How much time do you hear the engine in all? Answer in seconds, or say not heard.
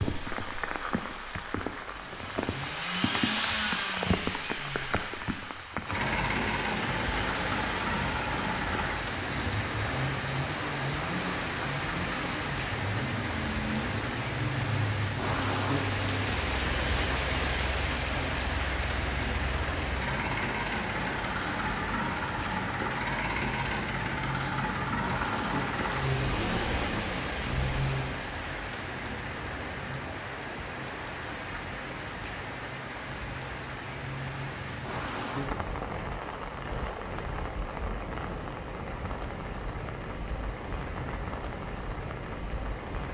28 s.